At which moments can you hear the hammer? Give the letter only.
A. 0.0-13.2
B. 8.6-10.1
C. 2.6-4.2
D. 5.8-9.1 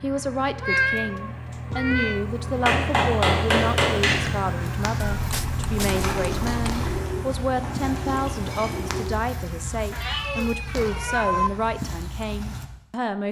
C.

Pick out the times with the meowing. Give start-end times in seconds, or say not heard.
0.6-2.2, 5.0-6.9, 9.9-11.5.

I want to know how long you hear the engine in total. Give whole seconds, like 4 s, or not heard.
10 s.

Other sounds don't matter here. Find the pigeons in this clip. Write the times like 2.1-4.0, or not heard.
5.8-9.1.